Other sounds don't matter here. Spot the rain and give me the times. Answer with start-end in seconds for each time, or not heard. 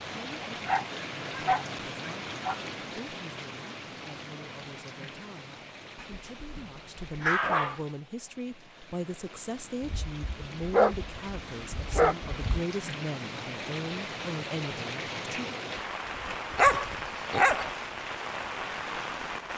0.0-19.5.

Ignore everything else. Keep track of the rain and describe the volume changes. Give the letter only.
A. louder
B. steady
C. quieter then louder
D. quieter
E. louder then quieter
C.